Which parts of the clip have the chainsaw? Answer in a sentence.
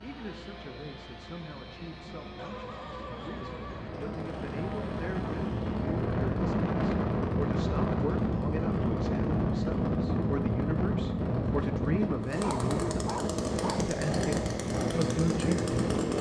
The chainsaw can be heard from 0.0 to 16.1 s.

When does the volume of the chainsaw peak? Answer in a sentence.
The loudest moment of the chainsaw is at 16 seconds.